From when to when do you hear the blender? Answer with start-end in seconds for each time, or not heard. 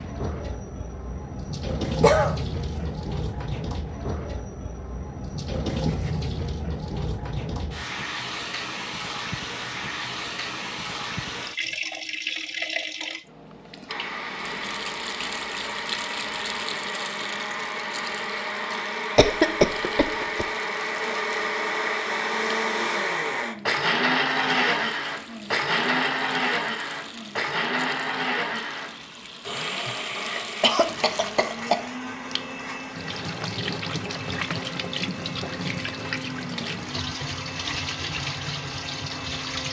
13.8-39.6.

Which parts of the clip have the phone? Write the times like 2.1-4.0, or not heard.
not heard.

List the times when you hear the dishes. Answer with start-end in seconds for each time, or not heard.
not heard.